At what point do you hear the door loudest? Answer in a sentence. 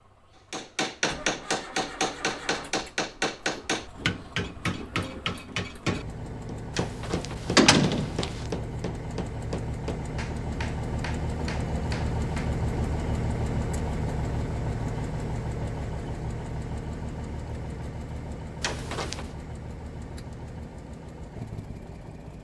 The loudest moment of the door is at 8 seconds.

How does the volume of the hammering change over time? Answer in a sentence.
The loudness of the hammering goes down.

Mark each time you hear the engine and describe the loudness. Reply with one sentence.
The engine can be heard from 0.0 to 22.4 s, getting louder then quieter.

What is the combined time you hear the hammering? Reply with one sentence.
The hammering can be heard for 12 seconds in total.